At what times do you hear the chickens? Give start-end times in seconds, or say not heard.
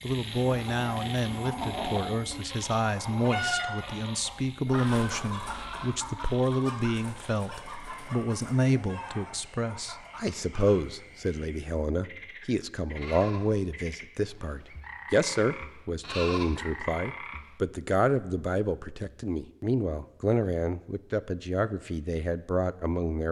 0.1-10.8.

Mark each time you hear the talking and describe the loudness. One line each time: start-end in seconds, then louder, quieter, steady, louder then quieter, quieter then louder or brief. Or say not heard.
0.0-23.2 steady.